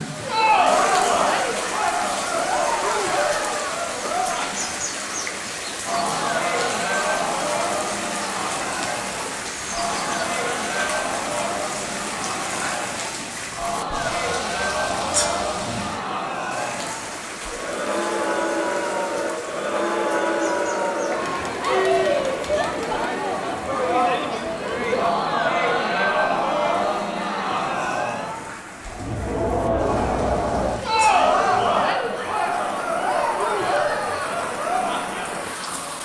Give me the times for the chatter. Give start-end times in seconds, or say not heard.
0.0-36.0.